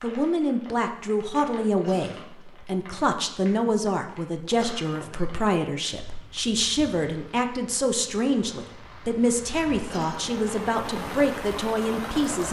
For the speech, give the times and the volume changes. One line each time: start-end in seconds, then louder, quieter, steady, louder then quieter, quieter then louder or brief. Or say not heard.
0.0-12.4 steady.